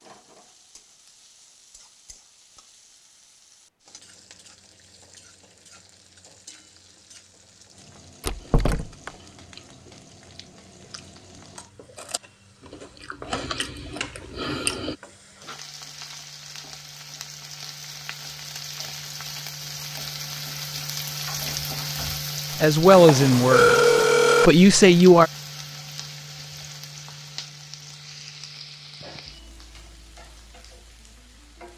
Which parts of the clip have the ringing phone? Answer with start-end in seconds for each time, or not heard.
22.9-24.5.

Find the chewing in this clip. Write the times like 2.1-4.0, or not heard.
8.4-14.9.